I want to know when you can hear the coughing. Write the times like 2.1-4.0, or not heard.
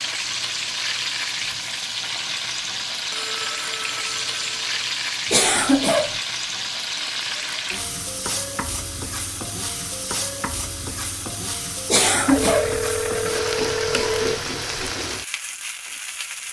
5.3-6.2, 11.9-12.8.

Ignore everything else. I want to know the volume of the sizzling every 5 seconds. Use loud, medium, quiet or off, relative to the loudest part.
loud, loud, loud, medium.